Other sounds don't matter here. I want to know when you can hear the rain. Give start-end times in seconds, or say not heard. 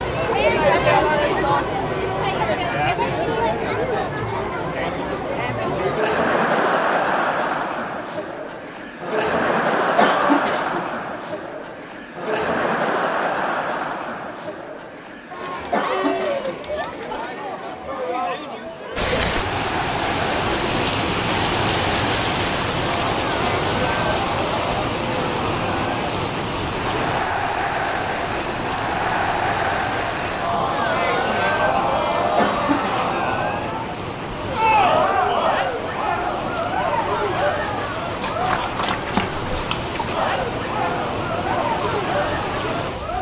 18.9-43.1.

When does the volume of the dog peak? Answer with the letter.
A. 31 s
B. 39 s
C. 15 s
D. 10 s
B.